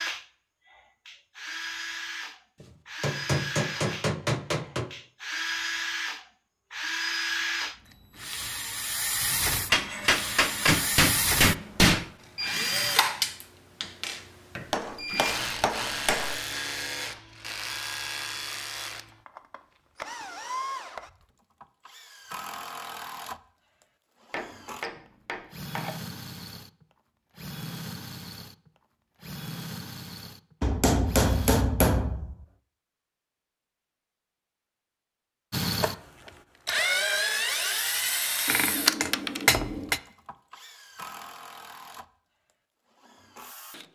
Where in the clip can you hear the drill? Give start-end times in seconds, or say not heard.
0.0-31.6, 35.5-43.9.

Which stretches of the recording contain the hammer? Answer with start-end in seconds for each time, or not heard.
2.6-4.9, 9.7-12.1, 14.7-16.4, 24.3-25.9, 30.6-32.4, 38.5-40.0.